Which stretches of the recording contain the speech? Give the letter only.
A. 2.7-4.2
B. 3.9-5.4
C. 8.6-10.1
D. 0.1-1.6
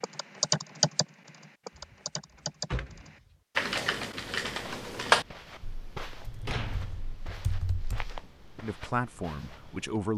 C.